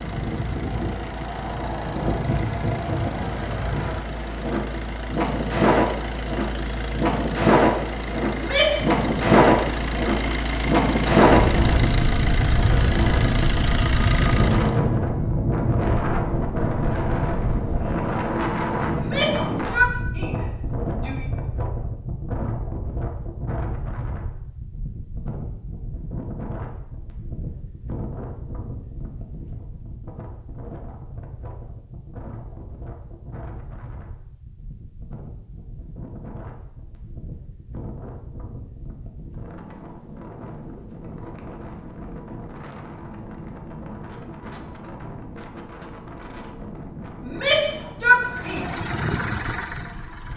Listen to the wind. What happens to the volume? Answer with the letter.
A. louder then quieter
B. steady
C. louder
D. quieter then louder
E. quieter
E.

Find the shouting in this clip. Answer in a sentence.
The shouting can be heard from 8.3 to 8.9 s, from 18.9 to 21.2 s and from 47.2 to 48.6 s.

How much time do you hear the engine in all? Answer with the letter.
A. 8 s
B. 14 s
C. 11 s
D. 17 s
D.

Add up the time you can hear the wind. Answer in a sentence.
The wind can be heard for 50 seconds in total.